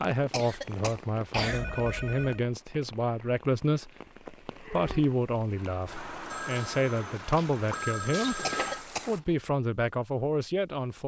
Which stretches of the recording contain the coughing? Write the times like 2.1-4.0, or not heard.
0.3-1.6, 8.4-9.3.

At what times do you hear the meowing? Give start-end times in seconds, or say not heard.
not heard.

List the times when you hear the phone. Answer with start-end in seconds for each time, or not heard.
1.4-2.4, 6.3-8.8.